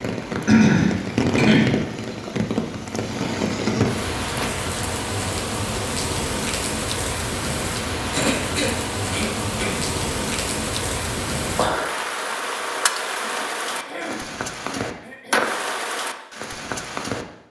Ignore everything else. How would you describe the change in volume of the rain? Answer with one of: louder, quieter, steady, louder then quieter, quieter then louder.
steady.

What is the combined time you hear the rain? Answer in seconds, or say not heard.
17 s.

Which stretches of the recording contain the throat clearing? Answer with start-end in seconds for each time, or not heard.
0.5-1.8, 8.1-9.8, 13.2-15.5.